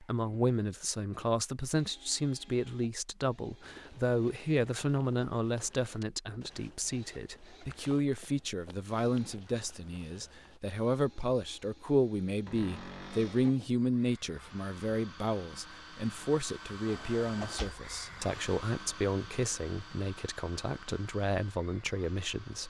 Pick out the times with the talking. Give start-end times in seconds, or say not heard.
0.0-22.6.